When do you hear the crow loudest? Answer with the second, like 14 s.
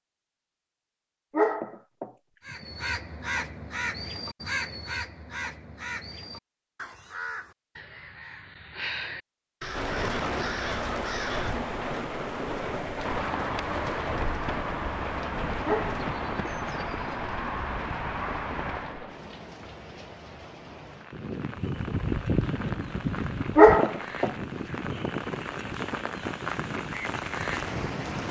22 s.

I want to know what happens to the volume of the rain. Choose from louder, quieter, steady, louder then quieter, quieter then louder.
quieter then louder.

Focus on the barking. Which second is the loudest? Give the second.
24 s.